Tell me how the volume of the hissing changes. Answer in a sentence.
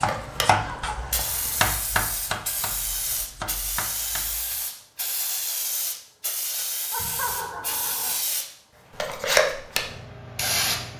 The volume of the hissing goes up.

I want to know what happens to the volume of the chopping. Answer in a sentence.
The loudness of the chopping goes down.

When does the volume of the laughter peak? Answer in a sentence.
The loudest moment of the laughter is at 7 seconds.